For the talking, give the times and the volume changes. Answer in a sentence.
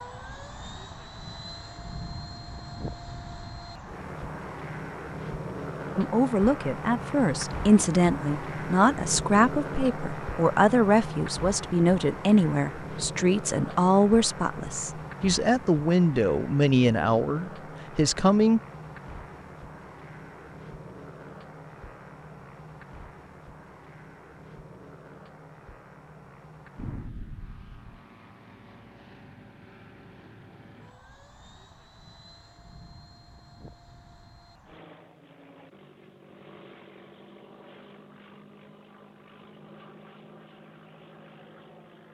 You can hear the talking from 6.0 to 18.6 s, at a steady volume.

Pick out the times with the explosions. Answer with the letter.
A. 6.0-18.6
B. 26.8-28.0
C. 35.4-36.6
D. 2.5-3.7
B.